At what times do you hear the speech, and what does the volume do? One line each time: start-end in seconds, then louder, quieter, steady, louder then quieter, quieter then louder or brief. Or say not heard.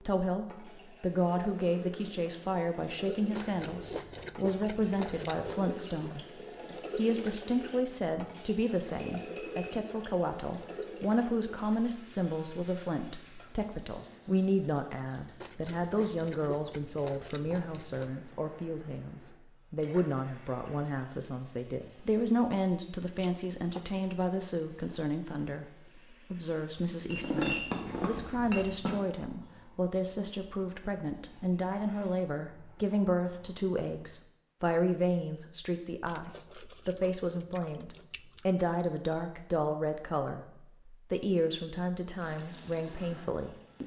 0.0-43.8 steady.